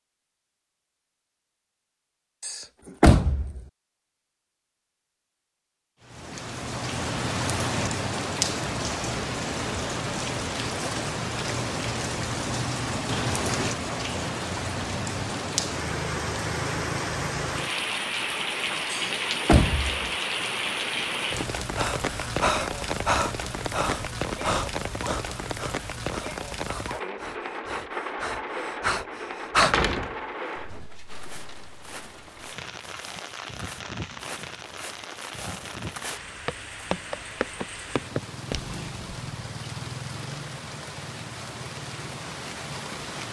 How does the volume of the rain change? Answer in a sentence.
The volume of the rain goes down.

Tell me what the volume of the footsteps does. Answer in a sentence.
The loudness of the footsteps goes up.